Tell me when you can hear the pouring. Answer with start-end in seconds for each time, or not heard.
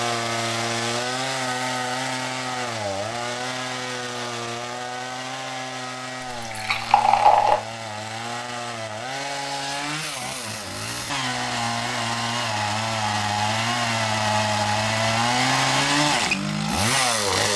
6.4-7.6.